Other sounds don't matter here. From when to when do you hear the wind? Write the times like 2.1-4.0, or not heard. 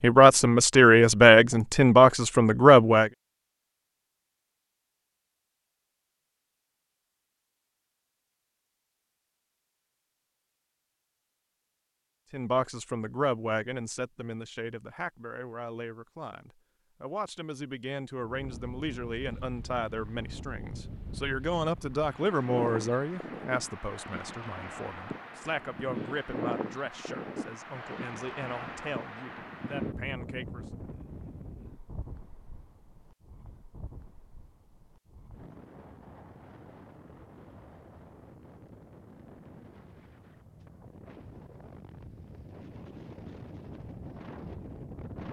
18.3-45.2.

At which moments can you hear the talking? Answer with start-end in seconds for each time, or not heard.
0.0-3.1, 12.3-30.6.